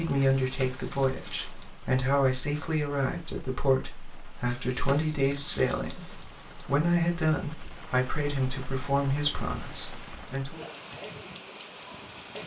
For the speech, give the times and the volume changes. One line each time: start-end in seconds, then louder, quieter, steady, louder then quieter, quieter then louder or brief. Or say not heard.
0.0-10.7 steady.